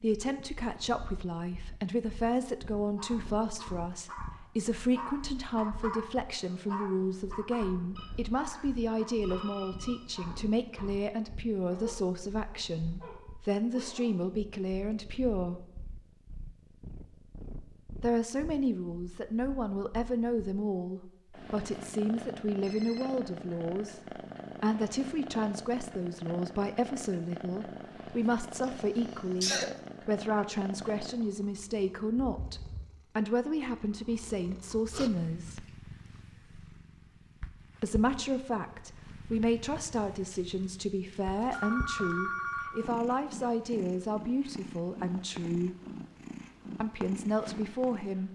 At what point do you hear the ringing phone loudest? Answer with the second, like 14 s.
42 s.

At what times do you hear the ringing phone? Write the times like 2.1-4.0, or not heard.
8.0-9.9, 22.6-23.1, 40.3-42.8.